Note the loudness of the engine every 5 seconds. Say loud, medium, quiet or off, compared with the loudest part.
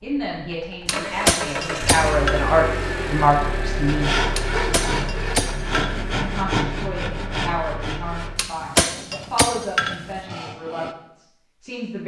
loud, medium, off.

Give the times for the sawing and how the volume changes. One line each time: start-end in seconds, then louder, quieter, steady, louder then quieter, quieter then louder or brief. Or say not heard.
3.9-10.9 quieter.